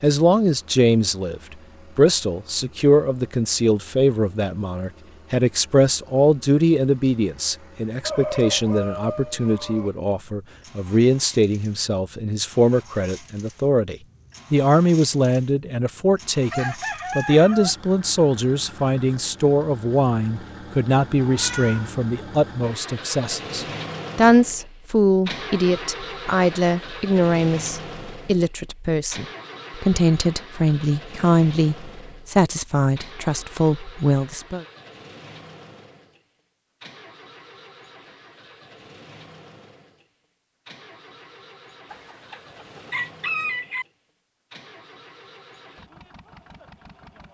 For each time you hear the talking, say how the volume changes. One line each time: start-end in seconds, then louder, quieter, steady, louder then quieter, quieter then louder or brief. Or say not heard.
0.0-34.6 steady.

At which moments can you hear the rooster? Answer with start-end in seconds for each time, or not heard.
8.0-9.9, 16.5-17.8, 41.9-43.9.